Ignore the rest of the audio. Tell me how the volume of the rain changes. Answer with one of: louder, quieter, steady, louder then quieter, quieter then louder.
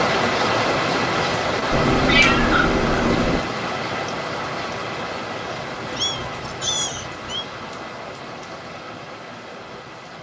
quieter.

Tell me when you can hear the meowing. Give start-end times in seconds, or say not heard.
1.7-3.4, 5.9-7.5.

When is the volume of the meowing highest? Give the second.
2 s.